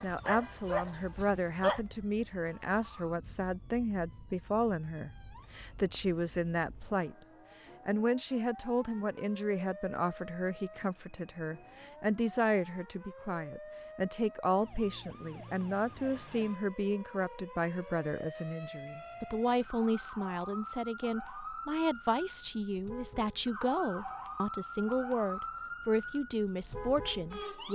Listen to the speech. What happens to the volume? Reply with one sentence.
The loudness of the speech stays about the same.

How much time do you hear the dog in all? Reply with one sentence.
The dog can be heard for 2 seconds in total.